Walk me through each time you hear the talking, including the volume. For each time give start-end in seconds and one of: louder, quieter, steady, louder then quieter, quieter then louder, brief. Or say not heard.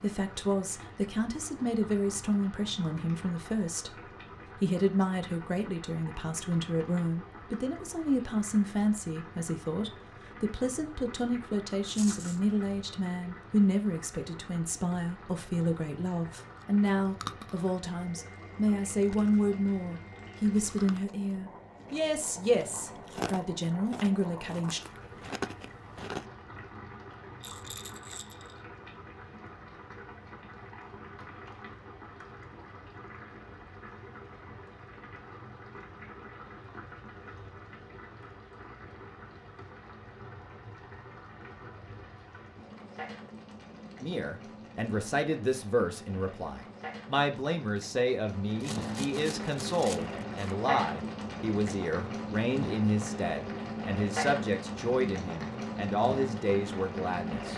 0.0-24.8 steady
44.0-57.5 steady.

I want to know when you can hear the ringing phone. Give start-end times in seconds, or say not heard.
not heard.